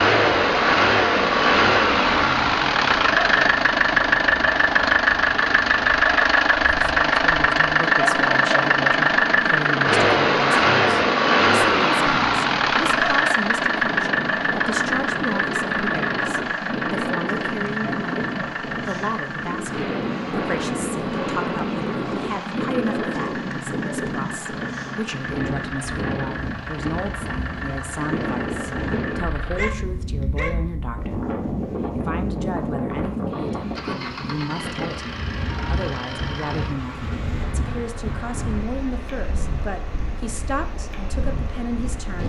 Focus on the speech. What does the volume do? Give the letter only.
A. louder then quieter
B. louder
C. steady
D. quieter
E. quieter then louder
C.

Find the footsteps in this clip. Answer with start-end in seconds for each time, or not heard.
not heard.